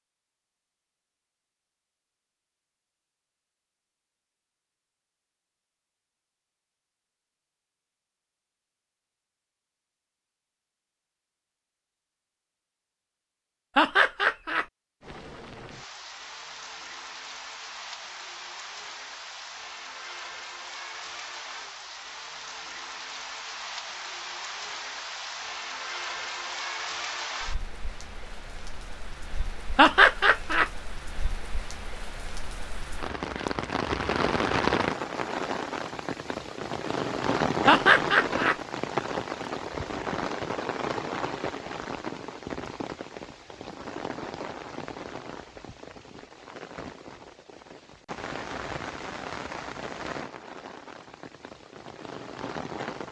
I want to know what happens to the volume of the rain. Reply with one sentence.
The loudness of the rain goes up, then down.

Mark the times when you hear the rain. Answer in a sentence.
You can hear the rain from 15.0 to 53.0 s.